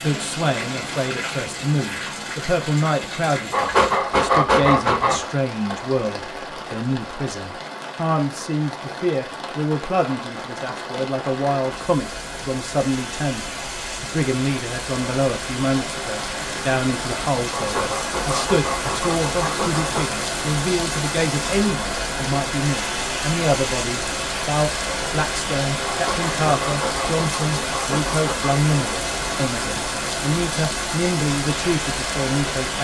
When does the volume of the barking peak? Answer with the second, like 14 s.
4 s.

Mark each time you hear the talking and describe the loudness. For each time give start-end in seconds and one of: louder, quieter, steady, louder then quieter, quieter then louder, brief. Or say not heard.
0.0-32.7 steady.